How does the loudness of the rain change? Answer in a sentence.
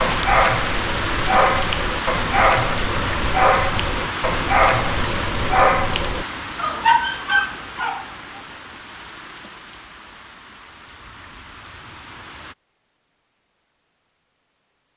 The loudness of the rain goes down.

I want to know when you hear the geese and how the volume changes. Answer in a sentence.
You can't hear the geese here.